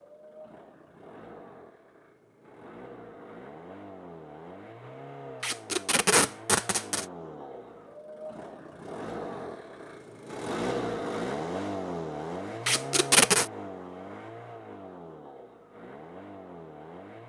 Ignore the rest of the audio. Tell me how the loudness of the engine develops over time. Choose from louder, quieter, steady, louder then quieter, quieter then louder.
louder then quieter.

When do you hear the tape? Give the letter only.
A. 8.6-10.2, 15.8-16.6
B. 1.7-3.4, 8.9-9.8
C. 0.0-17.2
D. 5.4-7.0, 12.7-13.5
D.